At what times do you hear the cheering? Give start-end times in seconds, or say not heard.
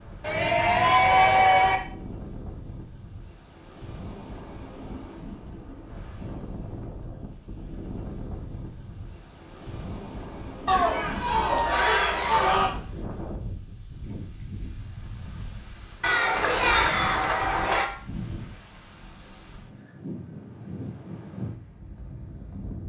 0.2-1.8, 10.7-12.7, 16.0-17.9.